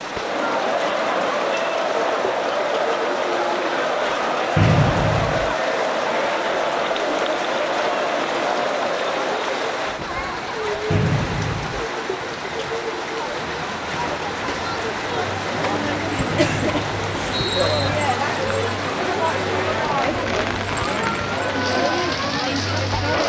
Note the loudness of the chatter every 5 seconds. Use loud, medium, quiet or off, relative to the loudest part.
loud, loud, medium, loud, loud.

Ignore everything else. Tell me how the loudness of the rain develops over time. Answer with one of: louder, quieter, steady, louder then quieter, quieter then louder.
steady.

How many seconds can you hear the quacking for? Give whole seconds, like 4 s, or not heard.
not heard.